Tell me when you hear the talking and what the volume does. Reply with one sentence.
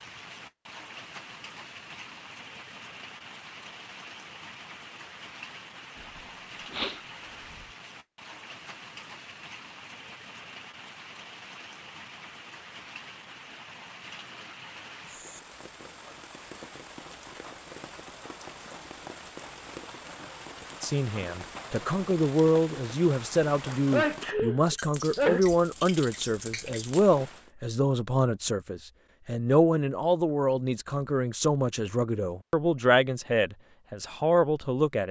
You can hear the talking from 20.8 to 35.0 s, at a steady volume.